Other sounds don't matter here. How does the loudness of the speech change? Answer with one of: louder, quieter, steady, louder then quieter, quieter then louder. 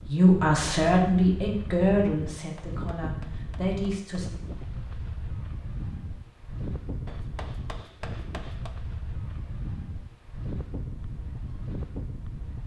quieter then louder.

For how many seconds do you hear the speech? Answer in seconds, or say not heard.
4 s.